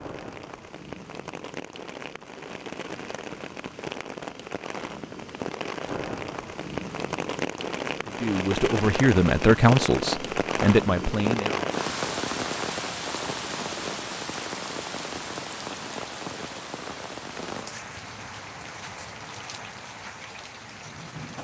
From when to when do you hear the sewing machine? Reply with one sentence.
The sewing machine can't be heard in this clip.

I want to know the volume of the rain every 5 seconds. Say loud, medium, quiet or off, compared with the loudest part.
medium, loud, loud, medium, medium.